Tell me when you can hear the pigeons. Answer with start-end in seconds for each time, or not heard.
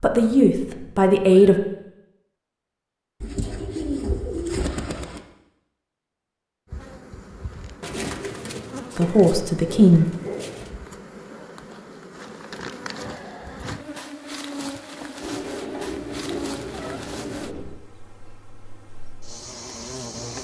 3.2-5.2, 7.8-10.7, 15.2-17.7.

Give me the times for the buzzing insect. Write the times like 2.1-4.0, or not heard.
6.7-20.3.